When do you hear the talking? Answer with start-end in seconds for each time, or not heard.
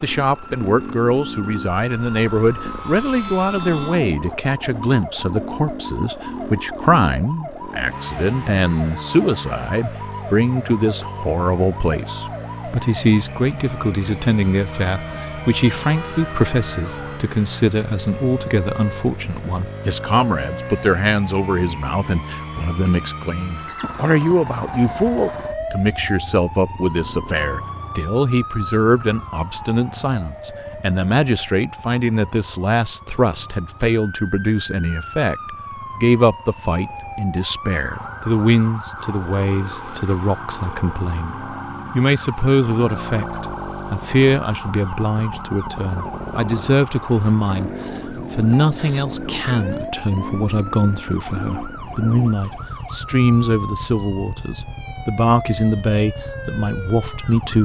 0.0-47.7, 48.3-57.5.